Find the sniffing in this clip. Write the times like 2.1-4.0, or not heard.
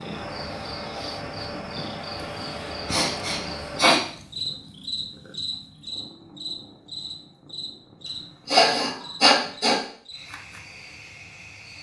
2.1-4.0, 8.4-9.8.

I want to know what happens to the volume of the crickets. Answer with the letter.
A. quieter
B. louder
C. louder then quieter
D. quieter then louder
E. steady
A.